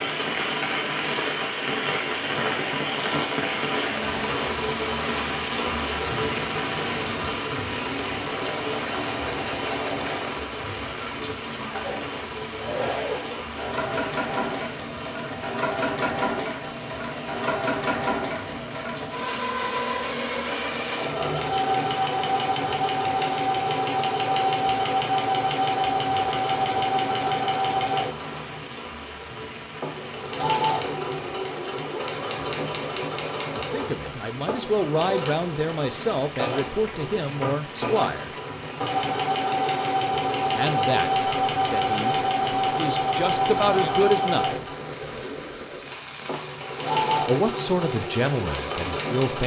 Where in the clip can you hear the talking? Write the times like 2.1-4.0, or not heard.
33.5-38.3, 40.5-42.1, 42.8-44.6, 47.2-49.4.